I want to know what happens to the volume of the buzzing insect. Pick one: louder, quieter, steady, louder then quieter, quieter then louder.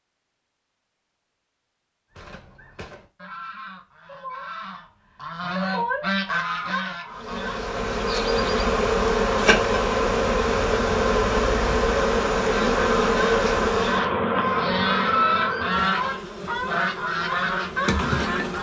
quieter.